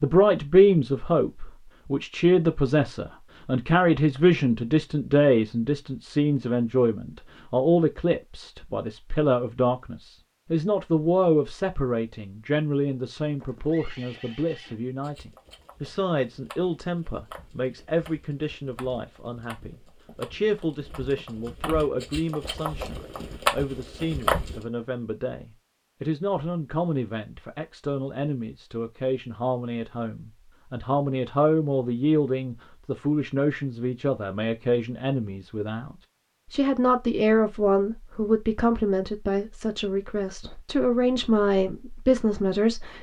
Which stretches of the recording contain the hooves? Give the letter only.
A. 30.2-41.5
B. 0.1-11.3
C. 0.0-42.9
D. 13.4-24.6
D.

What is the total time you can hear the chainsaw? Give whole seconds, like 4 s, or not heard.
not heard.